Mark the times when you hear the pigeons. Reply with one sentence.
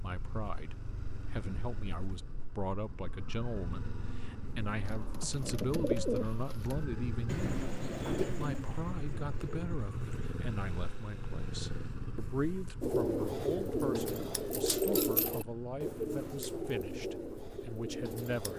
The pigeons can be heard from 4.8 to 10.3 s and from 12.8 to 18.5 s.